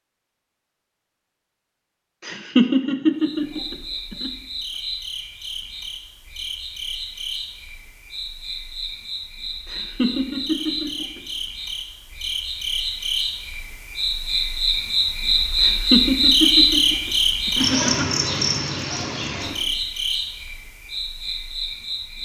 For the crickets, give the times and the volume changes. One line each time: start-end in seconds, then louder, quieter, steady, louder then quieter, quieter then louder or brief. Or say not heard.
3.2-22.1 louder then quieter.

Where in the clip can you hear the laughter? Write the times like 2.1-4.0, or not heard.
2.2-4.3, 9.7-11.2, 15.6-18.1.